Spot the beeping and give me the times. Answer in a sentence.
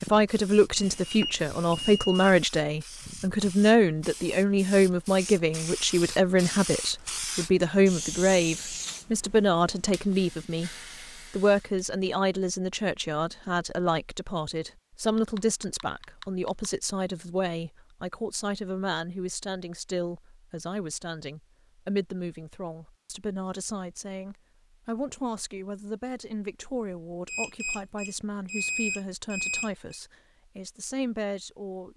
The beeping can be heard from 0.8 to 2.3 s, from 15.2 to 16.7 s and from 27.2 to 30.0 s.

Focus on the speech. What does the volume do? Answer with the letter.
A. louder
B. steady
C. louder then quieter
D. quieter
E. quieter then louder
D.